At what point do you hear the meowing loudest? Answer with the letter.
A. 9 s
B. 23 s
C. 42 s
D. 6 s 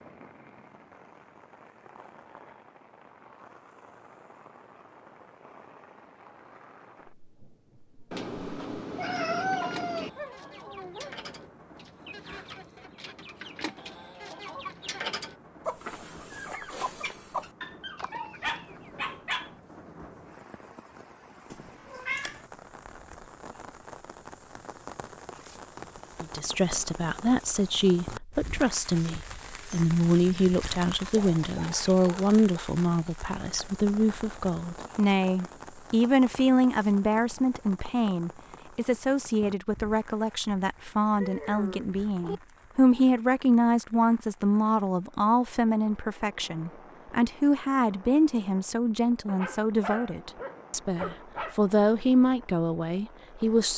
A.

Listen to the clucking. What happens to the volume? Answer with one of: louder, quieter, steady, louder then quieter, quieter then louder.
louder.